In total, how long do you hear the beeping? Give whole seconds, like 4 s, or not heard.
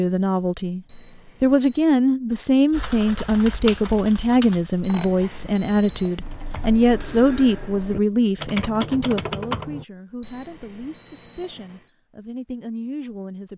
4 s.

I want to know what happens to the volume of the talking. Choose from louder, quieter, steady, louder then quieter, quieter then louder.
quieter.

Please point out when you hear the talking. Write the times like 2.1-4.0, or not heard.
0.0-13.5.